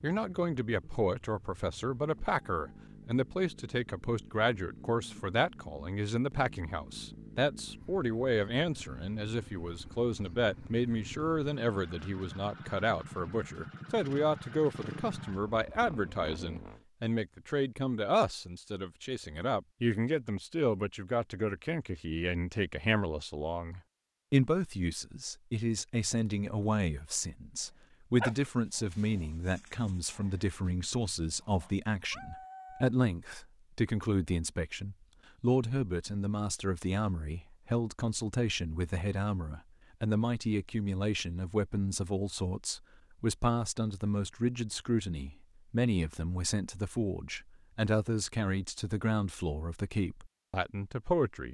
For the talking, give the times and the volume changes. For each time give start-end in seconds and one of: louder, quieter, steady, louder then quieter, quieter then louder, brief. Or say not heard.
0.0-51.5 steady.